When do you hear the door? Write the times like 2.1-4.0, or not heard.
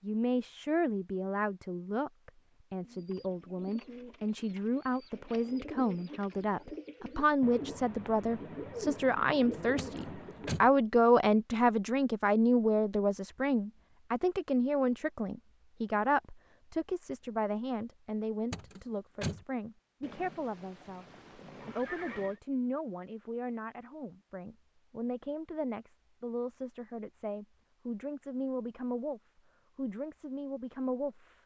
9.8-10.7, 18.5-19.4.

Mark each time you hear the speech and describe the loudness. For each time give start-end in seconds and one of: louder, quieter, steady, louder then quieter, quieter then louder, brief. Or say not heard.
0.0-21.1 louder then quieter
21.6-31.4 steady.